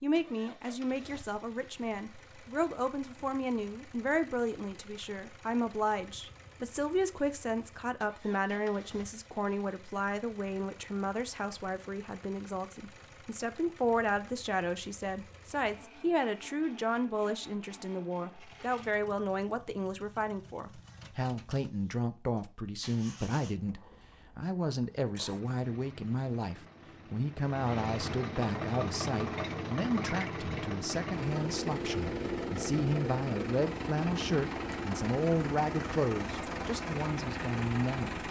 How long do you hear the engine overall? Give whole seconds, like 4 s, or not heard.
38 s.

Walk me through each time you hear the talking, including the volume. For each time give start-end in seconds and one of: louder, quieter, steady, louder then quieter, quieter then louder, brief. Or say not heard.
0.0-38.2 steady.